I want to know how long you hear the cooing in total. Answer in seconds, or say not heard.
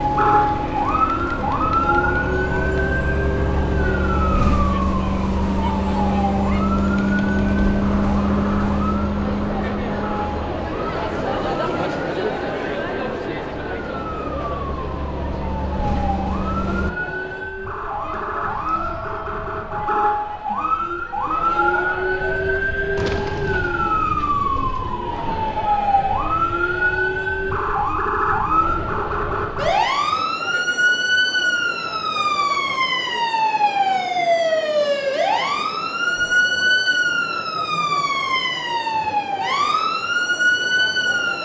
3 s.